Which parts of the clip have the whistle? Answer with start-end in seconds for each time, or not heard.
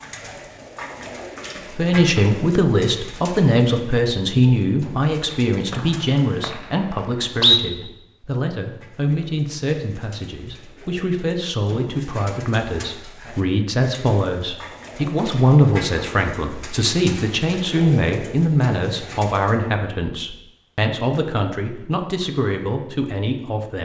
5.7-7.6.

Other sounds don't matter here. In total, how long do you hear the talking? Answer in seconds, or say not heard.
22 s.